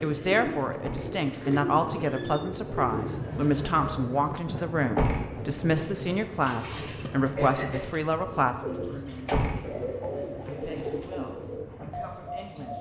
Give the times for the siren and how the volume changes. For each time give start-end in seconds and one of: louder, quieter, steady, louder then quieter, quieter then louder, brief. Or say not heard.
not heard.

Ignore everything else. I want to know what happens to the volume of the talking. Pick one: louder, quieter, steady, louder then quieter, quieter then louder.
quieter.